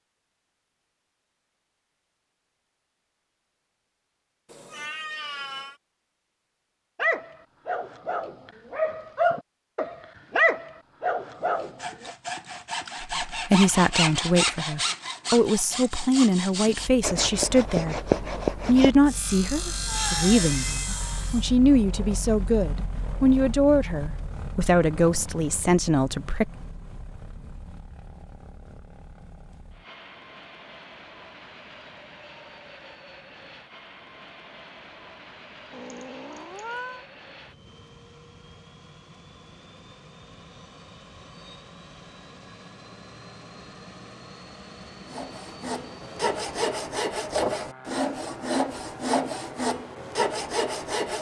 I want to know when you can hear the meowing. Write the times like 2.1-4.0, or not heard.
4.5-5.8, 19.9-21.1, 35.7-37.0.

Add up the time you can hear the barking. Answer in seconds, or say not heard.
5 s.